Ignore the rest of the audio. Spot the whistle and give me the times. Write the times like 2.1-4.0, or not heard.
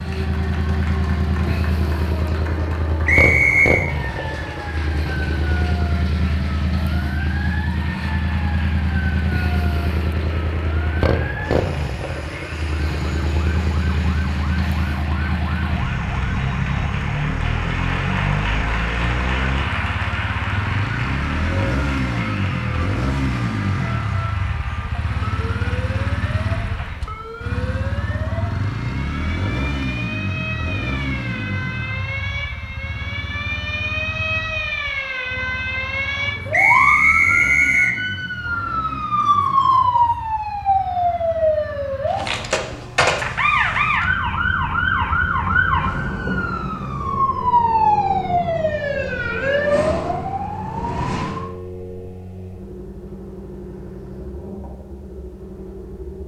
3.0-3.9, 36.5-38.0.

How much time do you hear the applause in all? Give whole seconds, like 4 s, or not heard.
27 s.